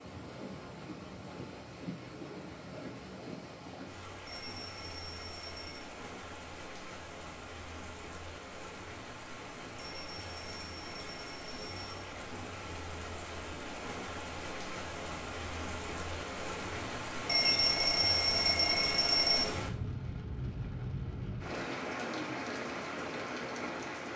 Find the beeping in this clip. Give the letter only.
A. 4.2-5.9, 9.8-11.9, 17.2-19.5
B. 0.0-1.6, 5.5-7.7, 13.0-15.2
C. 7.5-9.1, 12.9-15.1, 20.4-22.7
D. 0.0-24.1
A.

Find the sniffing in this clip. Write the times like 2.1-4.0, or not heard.
not heard.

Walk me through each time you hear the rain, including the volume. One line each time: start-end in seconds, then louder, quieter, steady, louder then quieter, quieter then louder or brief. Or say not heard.
0.0-24.1 louder.